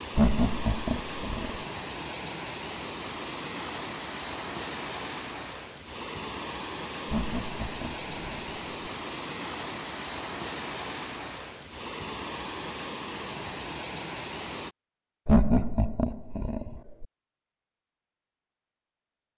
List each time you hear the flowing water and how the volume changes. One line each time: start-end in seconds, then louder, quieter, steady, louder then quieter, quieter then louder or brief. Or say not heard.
0.0-14.8 steady.